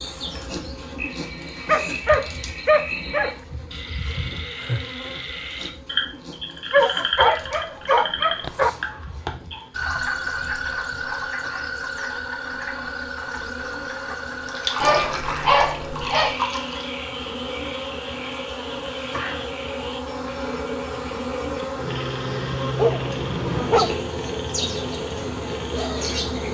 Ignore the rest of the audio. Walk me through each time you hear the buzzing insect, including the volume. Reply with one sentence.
You can hear the buzzing insect from 0.0 to 26.4 s, getting quieter then louder.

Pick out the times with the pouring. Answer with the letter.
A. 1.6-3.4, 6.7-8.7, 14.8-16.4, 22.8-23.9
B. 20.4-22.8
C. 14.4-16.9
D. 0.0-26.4
C.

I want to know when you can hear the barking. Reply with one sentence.
The barking can be heard from 1.6 to 3.4 s, from 6.7 to 8.7 s, from 14.8 to 16.4 s and from 22.8 to 23.9 s.